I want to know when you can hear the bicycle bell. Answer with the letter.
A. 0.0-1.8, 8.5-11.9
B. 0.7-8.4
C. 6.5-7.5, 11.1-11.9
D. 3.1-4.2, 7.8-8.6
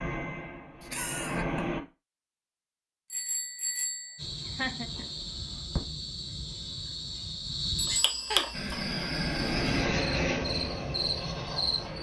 D.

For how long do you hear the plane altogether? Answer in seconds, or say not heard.
5 s.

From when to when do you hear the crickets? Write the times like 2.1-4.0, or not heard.
4.2-11.9.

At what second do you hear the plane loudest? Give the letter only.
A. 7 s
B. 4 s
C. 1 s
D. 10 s
D.